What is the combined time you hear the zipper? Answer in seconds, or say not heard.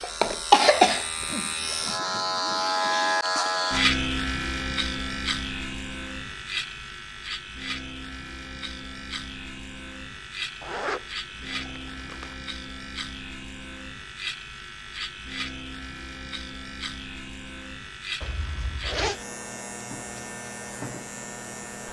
5 s.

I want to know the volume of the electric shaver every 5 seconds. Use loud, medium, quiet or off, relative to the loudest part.
loud, medium, medium, medium, medium.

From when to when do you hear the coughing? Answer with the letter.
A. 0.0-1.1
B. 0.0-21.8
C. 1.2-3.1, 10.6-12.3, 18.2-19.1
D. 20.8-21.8
A.